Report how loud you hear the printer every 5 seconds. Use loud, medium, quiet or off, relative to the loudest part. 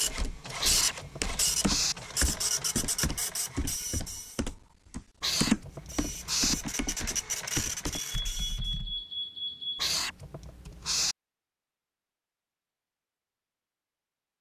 loud, loud, off.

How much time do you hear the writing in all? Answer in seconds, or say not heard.
4 s.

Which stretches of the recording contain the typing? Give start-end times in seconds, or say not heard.
0.0-9.1.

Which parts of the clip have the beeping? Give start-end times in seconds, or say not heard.
7.9-9.9.